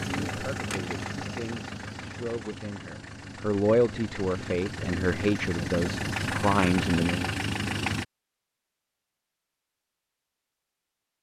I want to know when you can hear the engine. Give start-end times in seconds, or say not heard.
0.0-8.1.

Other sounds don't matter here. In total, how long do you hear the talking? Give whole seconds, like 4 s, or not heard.
7 s.